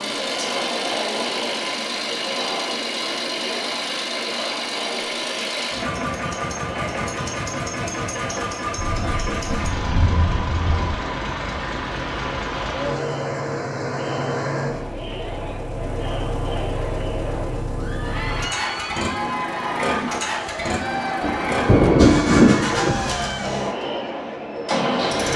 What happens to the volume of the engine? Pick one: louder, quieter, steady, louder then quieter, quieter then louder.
steady.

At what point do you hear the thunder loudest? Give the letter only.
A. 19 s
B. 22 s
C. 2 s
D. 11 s
B.